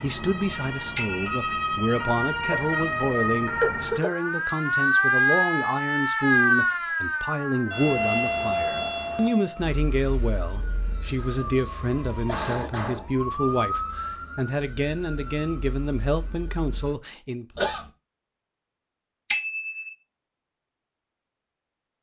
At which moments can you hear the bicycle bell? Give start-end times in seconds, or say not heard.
0.9-1.6, 19.3-19.9.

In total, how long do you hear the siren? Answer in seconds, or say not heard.
17 s.